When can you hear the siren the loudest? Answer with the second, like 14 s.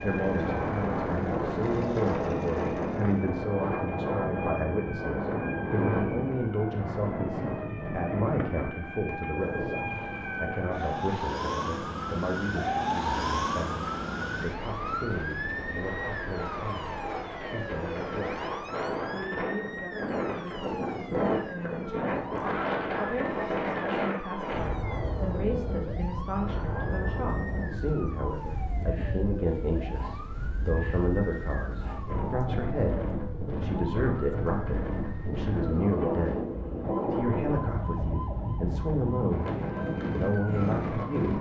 13 s.